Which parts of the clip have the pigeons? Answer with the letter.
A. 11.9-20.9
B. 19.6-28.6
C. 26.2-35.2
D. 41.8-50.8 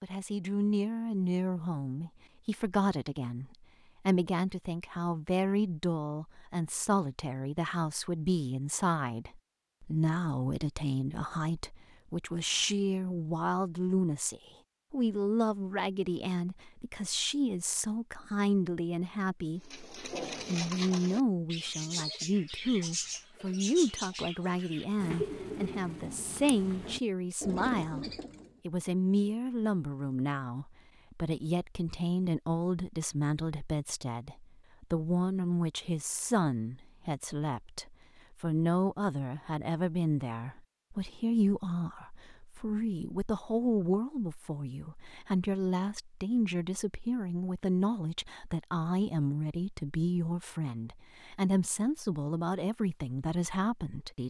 B.